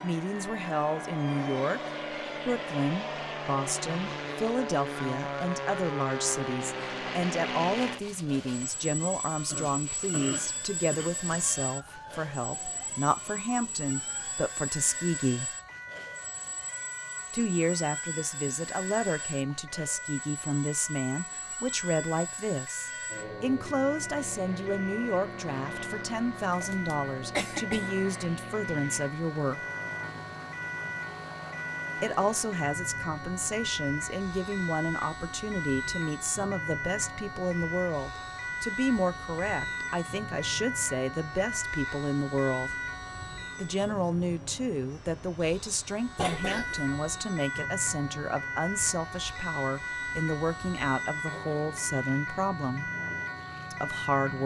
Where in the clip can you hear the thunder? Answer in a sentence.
The thunder can't be heard in this clip.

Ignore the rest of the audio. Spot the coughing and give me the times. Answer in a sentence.
The coughing can be heard from 9.4 to 11.1 s, from 26.4 to 28.0 s and from 46.1 to 46.9 s.